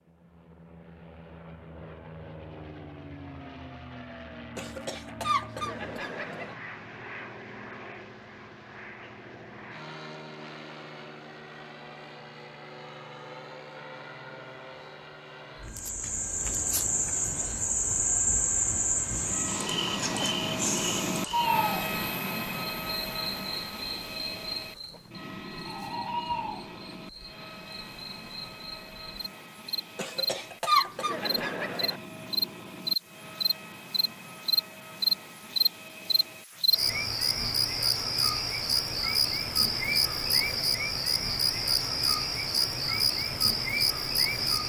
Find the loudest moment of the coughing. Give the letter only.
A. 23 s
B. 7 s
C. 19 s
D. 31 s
D.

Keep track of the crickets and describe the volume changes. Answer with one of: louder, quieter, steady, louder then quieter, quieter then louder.
quieter then louder.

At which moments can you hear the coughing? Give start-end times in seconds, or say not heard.
4.5-6.5, 29.9-32.0.